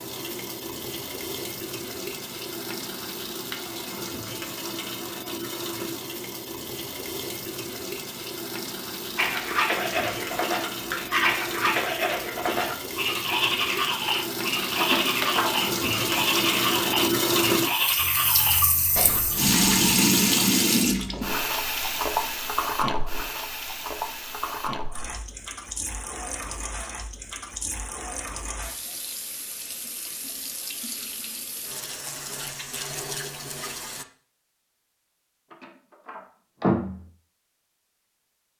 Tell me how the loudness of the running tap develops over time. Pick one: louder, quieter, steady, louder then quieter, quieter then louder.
louder then quieter.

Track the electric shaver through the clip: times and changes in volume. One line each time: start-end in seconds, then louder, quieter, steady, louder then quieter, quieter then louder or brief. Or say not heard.
not heard.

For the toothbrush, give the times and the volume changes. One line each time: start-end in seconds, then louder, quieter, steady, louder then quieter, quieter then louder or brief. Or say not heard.
9.2-19.9 steady.